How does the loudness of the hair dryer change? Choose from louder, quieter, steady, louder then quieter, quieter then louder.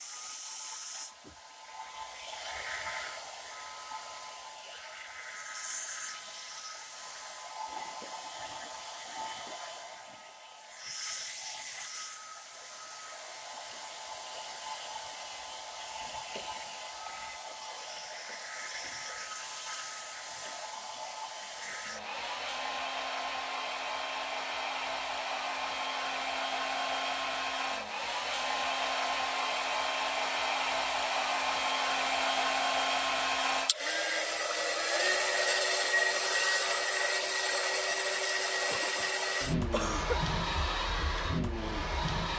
louder.